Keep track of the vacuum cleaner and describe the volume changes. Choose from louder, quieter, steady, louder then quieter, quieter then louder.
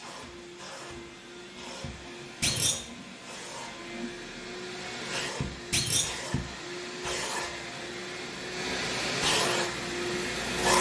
louder.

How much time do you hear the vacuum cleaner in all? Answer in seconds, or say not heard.
11 s.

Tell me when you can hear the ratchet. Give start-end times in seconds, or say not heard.
not heard.